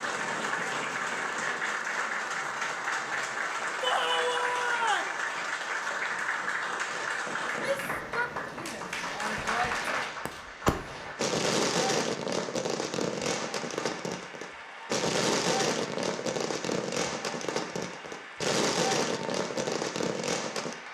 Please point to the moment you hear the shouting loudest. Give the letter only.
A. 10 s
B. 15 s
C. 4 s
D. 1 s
C.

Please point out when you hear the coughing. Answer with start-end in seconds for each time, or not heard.
not heard.